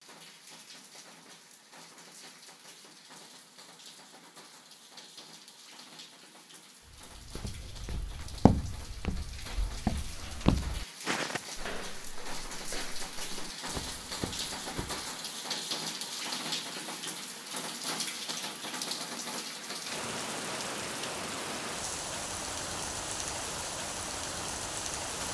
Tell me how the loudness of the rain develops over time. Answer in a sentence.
The volume of the rain goes up.